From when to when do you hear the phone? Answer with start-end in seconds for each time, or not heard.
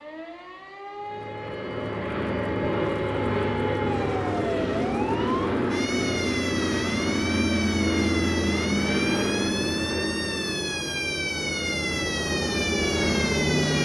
not heard.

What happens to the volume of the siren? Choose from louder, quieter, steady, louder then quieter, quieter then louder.
louder.